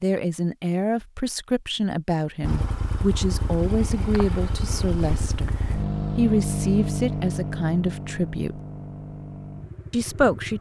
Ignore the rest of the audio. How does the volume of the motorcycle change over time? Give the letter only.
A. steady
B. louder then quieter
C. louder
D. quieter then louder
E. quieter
B.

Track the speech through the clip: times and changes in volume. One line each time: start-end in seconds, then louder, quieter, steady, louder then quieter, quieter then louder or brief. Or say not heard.
0.0-8.6 steady
9.9-10.5 brief.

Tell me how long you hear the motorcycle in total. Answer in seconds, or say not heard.
8 s.